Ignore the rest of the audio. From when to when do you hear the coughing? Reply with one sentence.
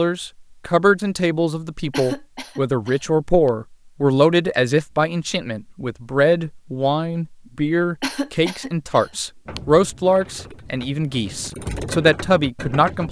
You can hear the coughing from 1.9 to 3.5 s and from 8.0 to 9.6 s.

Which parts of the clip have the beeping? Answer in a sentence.
The beeping can't be heard in this clip.